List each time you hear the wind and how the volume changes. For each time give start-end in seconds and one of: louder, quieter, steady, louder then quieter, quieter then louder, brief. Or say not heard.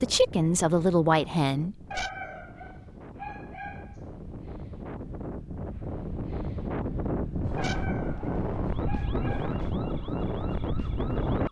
0.0-11.4 louder.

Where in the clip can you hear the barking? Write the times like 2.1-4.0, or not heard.
1.9-4.0, 7.5-9.6.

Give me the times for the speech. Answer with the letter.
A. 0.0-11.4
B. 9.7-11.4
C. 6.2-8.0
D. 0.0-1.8
D.